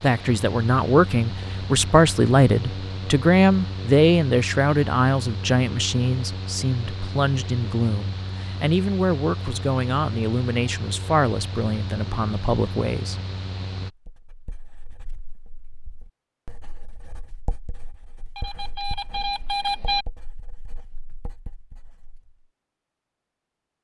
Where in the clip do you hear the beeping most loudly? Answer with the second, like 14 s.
20 s.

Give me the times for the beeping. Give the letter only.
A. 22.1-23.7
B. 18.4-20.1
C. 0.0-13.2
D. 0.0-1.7
B.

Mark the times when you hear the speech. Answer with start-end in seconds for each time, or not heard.
0.0-13.2.